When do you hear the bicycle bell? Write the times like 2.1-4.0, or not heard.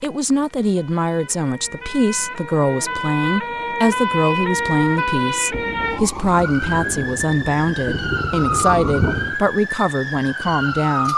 not heard.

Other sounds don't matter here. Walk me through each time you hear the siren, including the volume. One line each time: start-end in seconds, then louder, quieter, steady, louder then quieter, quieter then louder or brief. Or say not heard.
0.0-11.1 louder.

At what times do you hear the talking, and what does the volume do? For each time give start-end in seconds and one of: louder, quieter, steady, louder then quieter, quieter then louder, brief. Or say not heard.
0.0-11.1 steady.